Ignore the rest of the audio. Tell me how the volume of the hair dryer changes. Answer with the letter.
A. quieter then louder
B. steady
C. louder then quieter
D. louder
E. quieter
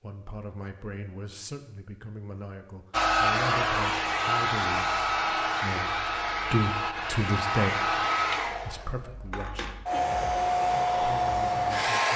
A.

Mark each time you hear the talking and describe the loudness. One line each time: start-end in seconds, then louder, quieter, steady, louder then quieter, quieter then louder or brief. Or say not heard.
0.0-9.7 louder
10.9-12.1 brief.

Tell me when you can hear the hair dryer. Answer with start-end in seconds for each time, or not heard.
2.9-12.1.